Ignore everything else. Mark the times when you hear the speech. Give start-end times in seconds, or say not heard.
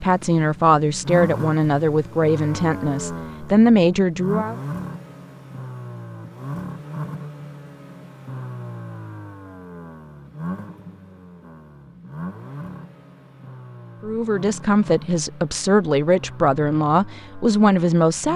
0.0-4.5, 14.0-18.3.